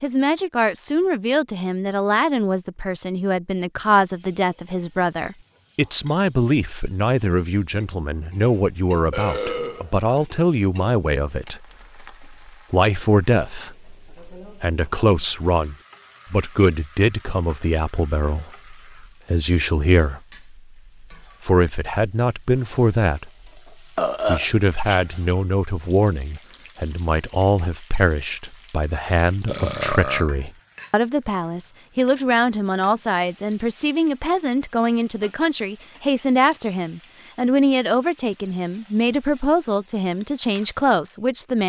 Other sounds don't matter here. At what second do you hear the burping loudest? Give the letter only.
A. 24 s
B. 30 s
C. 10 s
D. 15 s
A.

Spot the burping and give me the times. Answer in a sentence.
You can hear the burping from 9.1 to 10.2 s, from 23.9 to 25.1 s and from 29.4 to 30.3 s.